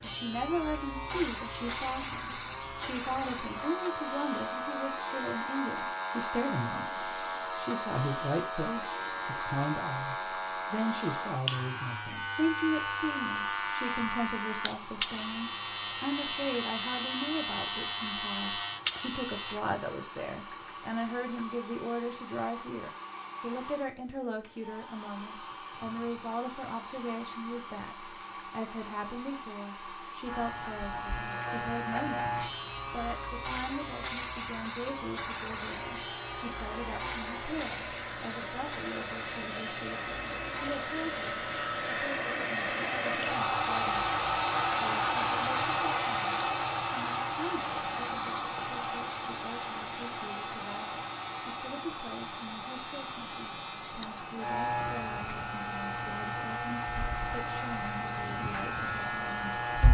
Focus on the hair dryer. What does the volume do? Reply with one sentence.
The loudness of the hair dryer goes up, then down.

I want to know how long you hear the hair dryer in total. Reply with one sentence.
You can hear the hair dryer for 60 seconds altogether.